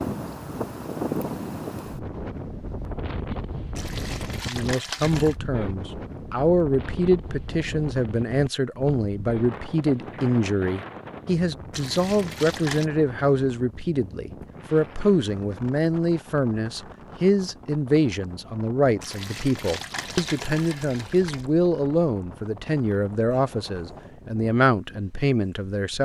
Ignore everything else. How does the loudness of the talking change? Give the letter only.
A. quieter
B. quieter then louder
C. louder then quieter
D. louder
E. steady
E.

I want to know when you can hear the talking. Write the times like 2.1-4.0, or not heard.
4.5-26.0.